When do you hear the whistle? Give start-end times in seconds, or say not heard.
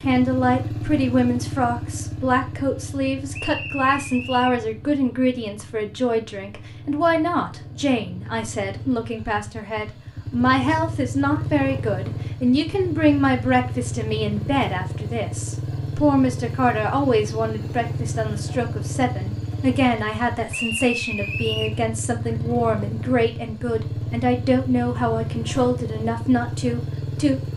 3.3-4.6, 20.5-21.8.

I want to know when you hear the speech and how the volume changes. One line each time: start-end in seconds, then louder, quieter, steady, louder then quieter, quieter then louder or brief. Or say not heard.
0.0-27.4 steady.